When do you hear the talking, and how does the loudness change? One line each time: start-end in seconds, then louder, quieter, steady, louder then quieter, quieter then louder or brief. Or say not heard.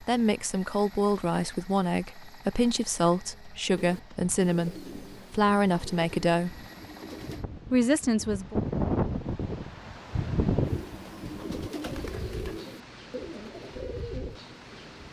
0.0-6.7 steady
7.7-8.6 brief.